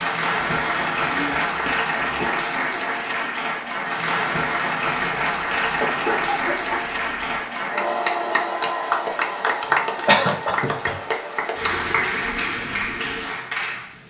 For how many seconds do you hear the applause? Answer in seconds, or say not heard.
14 s.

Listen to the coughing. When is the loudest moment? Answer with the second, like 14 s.
10 s.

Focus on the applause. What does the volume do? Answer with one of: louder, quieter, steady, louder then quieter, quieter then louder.
steady.